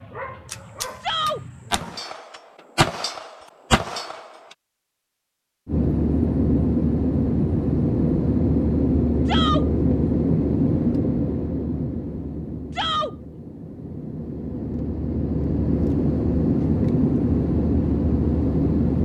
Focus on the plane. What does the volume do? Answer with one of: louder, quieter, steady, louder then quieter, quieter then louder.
quieter then louder.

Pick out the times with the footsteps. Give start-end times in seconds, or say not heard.
not heard.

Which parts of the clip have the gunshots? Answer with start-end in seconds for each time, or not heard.
0.5-4.5.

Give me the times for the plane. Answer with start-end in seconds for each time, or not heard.
5.7-19.0.